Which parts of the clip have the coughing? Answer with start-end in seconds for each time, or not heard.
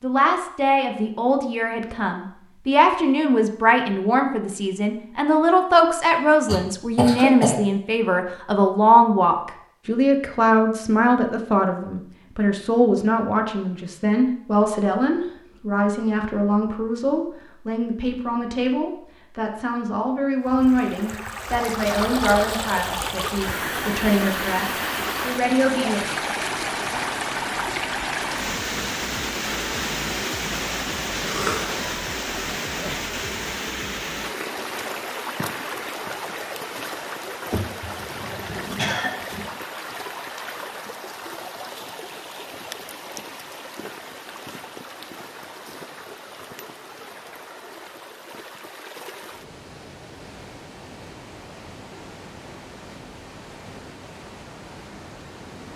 6.5-7.6, 31.2-31.8, 37.5-39.5.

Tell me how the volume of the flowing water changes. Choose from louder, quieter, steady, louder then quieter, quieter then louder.
quieter.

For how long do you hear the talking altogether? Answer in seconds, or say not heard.
26 s.